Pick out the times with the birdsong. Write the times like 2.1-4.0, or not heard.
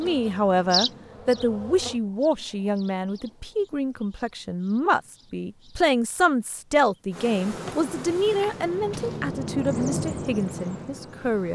0.0-11.5.